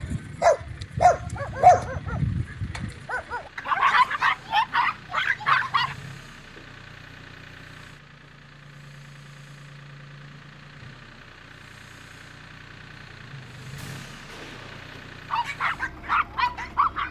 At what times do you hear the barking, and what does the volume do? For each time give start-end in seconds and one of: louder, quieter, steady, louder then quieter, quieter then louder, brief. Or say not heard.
0.0-6.0 quieter then louder
15.3-17.0 brief.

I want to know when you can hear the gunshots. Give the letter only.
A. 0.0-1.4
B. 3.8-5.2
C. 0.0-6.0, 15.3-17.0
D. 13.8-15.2
D.